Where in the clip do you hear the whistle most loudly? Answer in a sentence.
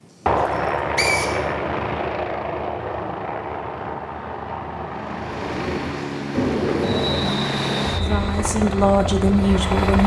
The loudest moment of the whistle is at 1 second.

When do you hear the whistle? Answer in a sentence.
You can hear the whistle from 0.9 to 1.4 s and from 6.8 to 8.2 s.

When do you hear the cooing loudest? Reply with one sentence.
The loudest moment of the cooing is at 7 seconds.